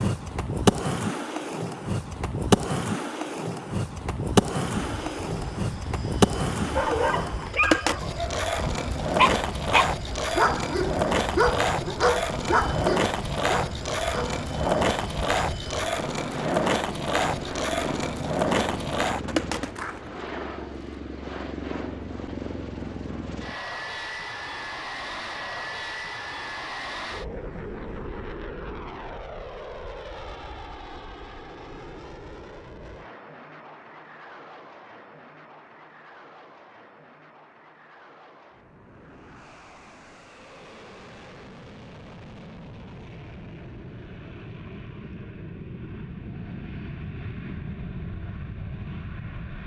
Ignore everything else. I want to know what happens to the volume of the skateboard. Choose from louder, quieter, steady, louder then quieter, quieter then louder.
steady.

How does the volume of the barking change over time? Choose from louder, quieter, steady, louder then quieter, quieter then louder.
louder then quieter.